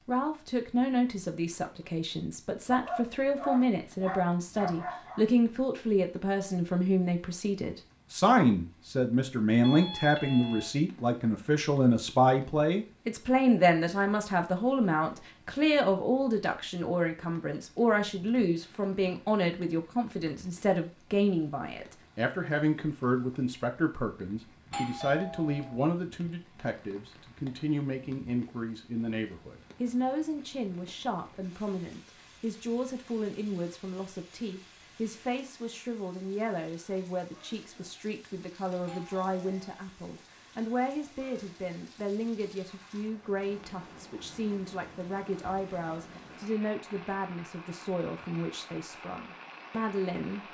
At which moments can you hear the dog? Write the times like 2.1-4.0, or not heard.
2.7-5.2.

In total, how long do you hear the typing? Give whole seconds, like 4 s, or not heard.
not heard.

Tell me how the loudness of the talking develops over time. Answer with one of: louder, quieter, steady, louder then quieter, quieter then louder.
quieter.